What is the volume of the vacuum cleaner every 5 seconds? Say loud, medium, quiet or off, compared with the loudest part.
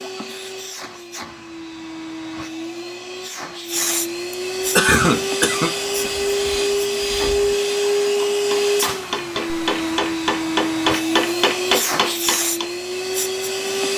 medium, loud, loud.